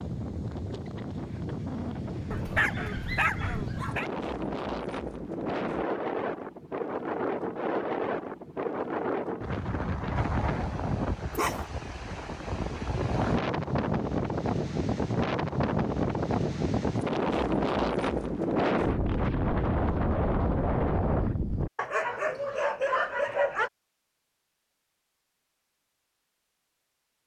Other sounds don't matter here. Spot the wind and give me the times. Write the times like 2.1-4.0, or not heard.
0.0-21.7.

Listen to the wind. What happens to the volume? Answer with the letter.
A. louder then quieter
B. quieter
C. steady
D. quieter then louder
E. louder
E.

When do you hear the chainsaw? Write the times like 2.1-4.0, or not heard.
not heard.